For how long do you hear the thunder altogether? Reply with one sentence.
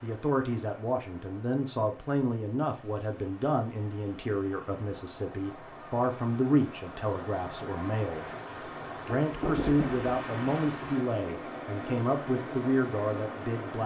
The thunder can be heard for 2 seconds in total.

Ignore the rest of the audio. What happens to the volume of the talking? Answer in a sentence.
The volume of the talking stays about the same.